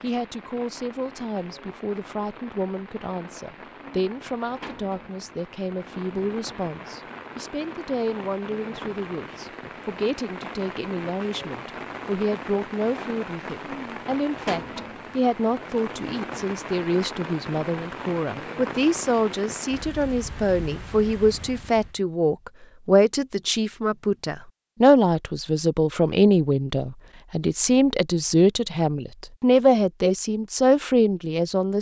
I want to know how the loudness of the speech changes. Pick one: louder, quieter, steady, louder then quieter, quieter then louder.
louder.